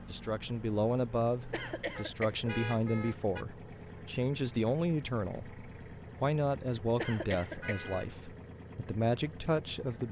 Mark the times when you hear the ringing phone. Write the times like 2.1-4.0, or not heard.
not heard.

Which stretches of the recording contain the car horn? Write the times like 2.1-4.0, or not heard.
1.9-3.5, 7.6-8.2.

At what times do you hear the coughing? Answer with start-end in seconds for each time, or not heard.
1.5-2.5, 7.0-7.8.